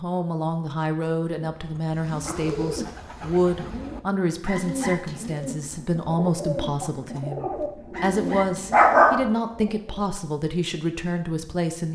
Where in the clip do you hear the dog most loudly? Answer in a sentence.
The volume of the dog peaks at 9 seconds.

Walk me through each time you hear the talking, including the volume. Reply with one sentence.
The talking can be heard from 0.0 to 11.9 s, at a steady volume.